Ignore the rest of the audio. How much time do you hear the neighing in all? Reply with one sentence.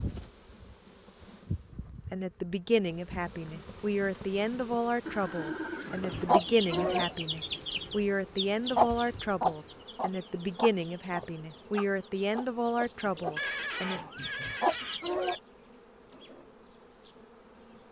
You can hear the neighing for 4 seconds altogether.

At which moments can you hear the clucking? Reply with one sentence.
The clucking can be heard from 6.1 to 15.4 s.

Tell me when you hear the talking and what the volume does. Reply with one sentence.
The talking can be heard from 2.1 to 14.0 s, at a steady volume.